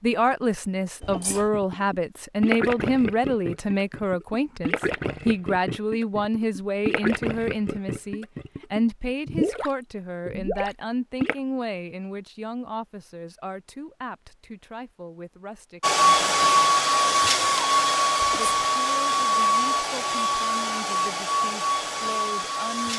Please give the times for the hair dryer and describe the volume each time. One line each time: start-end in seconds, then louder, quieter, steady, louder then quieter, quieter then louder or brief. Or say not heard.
15.8-22.9 quieter.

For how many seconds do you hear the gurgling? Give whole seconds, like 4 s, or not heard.
10 s.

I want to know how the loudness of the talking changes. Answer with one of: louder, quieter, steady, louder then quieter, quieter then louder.
quieter.